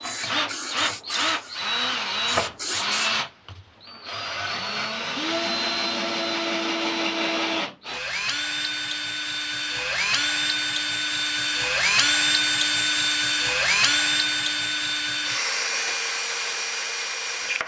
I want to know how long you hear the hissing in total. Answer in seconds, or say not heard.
3 s.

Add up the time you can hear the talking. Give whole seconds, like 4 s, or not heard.
not heard.